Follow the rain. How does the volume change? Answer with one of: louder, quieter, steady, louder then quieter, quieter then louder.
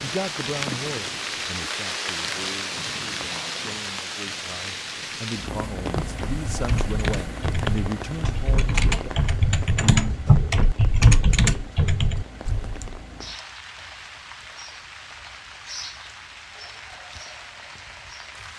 quieter.